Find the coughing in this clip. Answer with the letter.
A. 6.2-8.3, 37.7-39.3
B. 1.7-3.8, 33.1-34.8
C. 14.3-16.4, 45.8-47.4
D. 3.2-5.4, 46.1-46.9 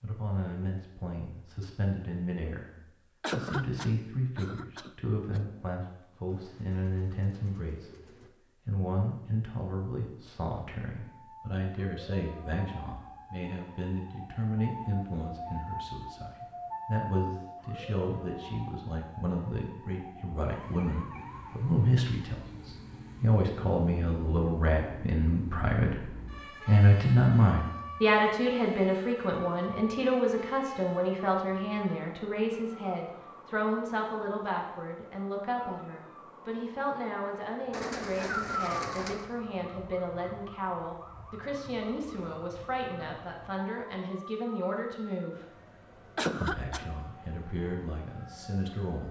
D.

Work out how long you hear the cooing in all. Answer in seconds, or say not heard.
4 s.